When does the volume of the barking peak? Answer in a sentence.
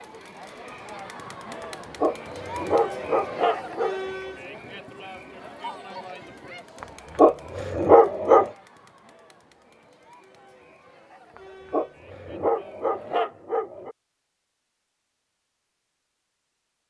The loudest moment of the barking is at 8 seconds.